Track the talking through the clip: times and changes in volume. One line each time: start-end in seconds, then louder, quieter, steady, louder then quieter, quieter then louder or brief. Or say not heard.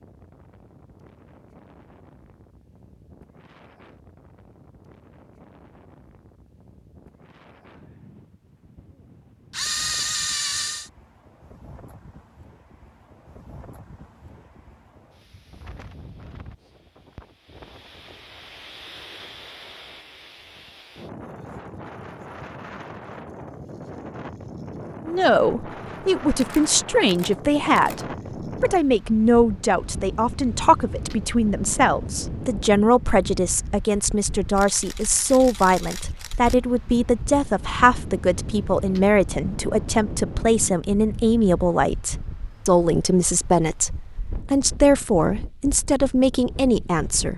25.1-28.0 brief
28.6-47.3 steady.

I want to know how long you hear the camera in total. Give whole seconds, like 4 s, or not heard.
5 s.